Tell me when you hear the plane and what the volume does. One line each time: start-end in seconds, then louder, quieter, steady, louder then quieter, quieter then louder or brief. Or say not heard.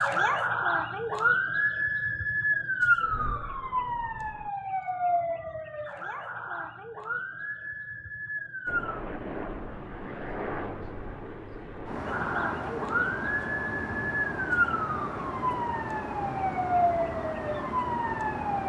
2.8-4.5 brief
8.7-18.6 steady.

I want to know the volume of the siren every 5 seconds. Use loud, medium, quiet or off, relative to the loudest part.
loud, medium, loud, loud.